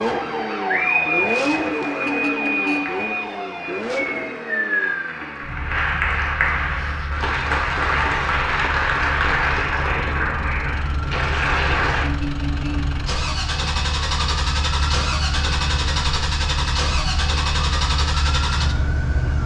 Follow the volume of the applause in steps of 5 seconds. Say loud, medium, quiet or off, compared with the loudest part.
quiet, loud, loud, off.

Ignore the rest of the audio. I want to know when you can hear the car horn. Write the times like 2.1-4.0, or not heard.
2.0-3.0, 12.0-12.9.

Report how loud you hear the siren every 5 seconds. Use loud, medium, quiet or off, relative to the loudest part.
loud, quiet, medium, medium.